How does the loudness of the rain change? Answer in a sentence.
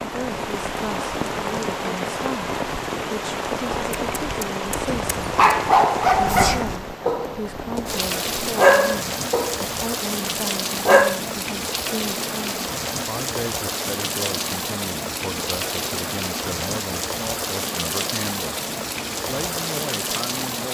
The loudness of the rain stays about the same.